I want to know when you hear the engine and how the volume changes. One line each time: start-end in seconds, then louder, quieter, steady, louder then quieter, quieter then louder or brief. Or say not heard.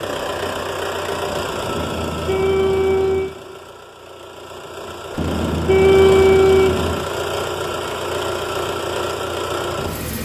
0.0-10.2 quieter then louder.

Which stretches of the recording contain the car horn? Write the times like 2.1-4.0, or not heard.
1.8-3.4, 5.2-7.0.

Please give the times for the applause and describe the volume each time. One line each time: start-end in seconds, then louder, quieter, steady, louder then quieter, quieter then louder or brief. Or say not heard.
not heard.